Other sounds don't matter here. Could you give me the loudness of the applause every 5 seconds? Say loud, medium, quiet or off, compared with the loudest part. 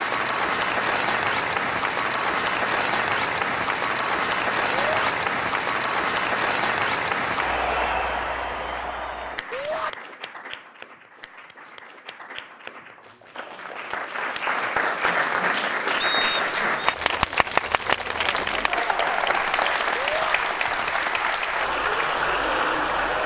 loud, loud, medium, loud, loud.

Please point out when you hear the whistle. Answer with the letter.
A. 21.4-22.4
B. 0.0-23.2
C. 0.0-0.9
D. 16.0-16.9
D.